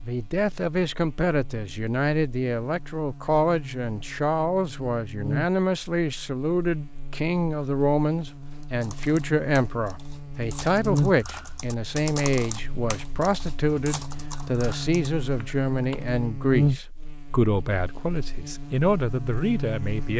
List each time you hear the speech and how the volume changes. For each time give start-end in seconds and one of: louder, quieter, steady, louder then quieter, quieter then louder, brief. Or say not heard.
0.0-20.1 steady.